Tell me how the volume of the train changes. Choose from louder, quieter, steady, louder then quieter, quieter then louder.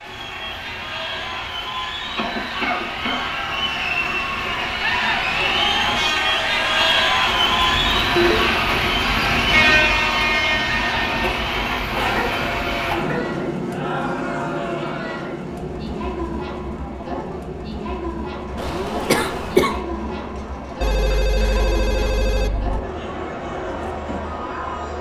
louder then quieter.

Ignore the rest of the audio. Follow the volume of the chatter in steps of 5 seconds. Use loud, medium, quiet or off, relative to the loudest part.
medium, loud, medium, medium, medium.